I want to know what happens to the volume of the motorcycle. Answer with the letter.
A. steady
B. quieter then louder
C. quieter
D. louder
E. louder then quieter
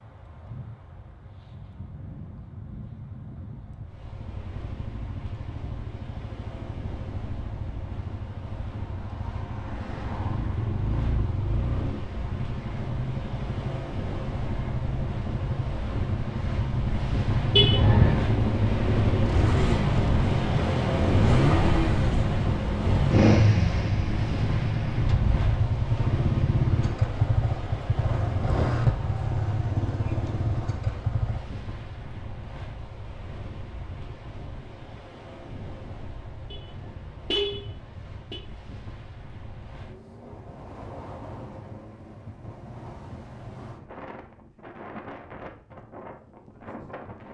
D.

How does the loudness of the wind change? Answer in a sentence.
The loudness of the wind goes up, then down.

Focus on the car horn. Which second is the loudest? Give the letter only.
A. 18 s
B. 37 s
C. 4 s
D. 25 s
A.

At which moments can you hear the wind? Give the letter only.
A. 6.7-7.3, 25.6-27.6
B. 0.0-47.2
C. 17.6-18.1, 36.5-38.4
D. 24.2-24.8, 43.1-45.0
B.